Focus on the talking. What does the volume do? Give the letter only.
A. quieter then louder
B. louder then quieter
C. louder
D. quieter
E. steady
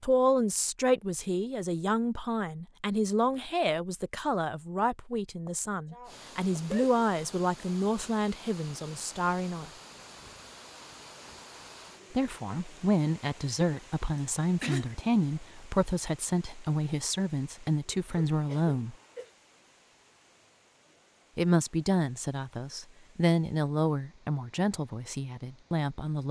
E.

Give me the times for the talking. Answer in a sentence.
You can hear the talking from 0.0 to 9.7 s, from 12.1 to 18.9 s and from 21.4 to 26.2 s.